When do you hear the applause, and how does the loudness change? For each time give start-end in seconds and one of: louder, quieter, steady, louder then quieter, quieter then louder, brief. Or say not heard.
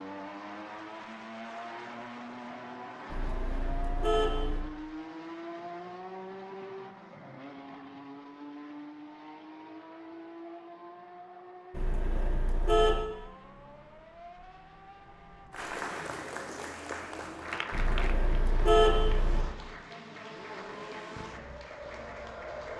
15.5-22.7 quieter.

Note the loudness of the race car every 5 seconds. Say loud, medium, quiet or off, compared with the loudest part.
loud, loud, medium, medium, loud.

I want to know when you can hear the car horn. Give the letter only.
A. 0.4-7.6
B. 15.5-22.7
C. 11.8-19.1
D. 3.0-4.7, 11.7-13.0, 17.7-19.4
D.